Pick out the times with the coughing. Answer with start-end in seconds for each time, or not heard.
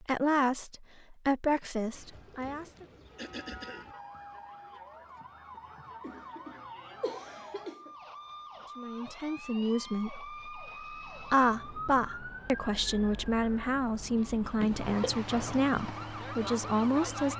2.8-3.9, 6.0-7.9, 14.6-15.3.